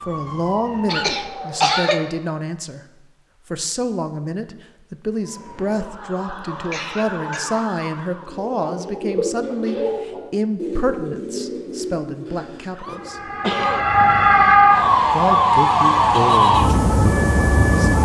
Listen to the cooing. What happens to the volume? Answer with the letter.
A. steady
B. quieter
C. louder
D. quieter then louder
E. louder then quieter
B.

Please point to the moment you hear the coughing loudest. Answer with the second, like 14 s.
2 s.